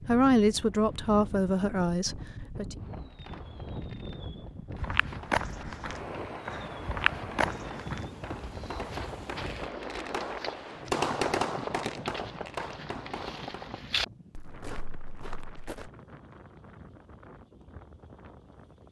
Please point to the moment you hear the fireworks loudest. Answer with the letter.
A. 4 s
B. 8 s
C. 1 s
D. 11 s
D.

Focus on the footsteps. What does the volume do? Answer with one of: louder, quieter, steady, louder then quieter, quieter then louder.
quieter then louder.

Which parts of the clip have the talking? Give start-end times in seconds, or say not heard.
0.1-2.8.